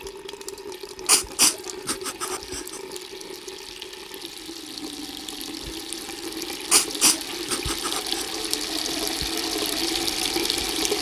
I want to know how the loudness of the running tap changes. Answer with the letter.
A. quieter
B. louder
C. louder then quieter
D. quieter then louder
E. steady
B.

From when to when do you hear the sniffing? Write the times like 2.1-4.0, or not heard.
1.1-2.8, 6.7-8.2.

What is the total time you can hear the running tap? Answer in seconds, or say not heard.
11 s.